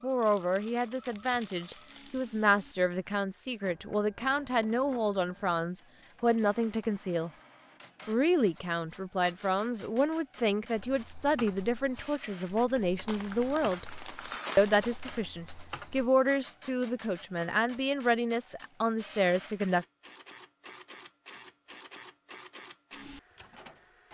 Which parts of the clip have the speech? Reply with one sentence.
You can hear the speech from 0.0 to 7.3 s, from 8.1 to 13.9 s and from 14.6 to 19.9 s.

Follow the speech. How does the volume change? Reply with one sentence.
The volume of the speech stays about the same.